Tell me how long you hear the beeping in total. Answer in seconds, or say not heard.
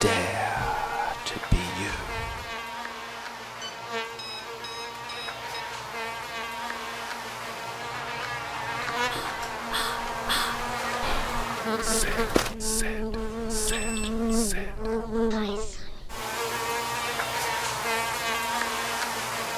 3 s.